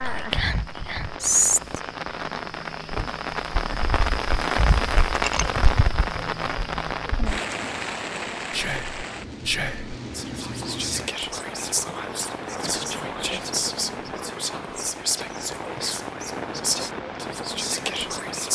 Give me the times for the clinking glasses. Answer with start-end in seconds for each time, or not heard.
5.1-5.7.